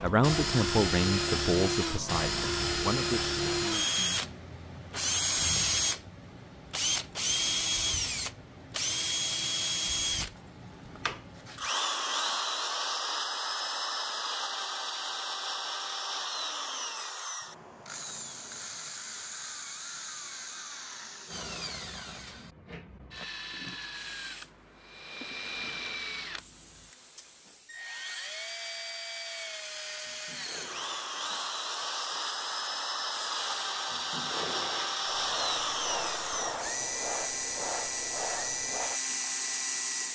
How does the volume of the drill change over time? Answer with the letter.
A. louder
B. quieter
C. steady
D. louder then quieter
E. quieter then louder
E.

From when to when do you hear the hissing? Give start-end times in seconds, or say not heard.
23.9-40.0.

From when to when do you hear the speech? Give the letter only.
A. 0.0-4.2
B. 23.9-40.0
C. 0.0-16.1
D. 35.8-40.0
A.